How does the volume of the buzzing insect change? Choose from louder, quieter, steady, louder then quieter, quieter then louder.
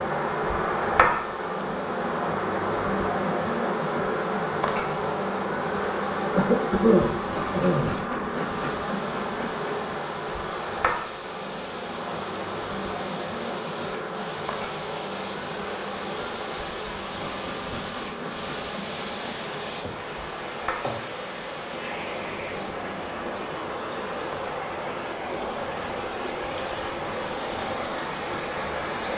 quieter.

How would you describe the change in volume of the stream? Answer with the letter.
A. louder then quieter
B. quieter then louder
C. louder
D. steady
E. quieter
C.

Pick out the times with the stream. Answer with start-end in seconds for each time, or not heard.
0.0-29.1.